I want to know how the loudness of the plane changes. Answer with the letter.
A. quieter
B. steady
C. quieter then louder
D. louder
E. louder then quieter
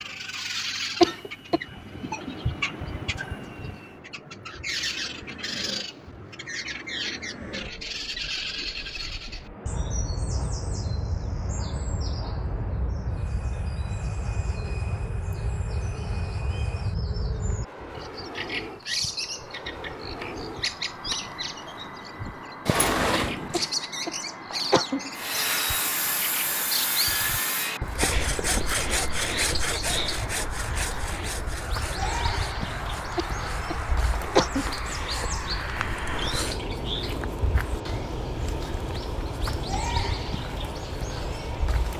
D.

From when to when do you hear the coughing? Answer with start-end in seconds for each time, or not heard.
1.0-1.6, 23.5-25.1, 33.1-34.8.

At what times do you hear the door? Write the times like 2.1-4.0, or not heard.
22.6-23.7.